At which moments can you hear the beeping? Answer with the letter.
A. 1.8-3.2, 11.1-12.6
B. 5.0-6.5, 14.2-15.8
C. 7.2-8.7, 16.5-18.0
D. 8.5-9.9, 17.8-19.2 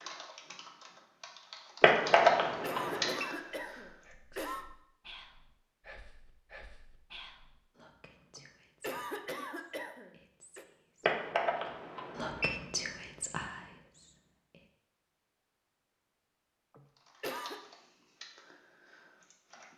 A.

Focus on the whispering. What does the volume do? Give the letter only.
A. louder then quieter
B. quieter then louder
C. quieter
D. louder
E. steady
B.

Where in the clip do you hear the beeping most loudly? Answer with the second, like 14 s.
2 s.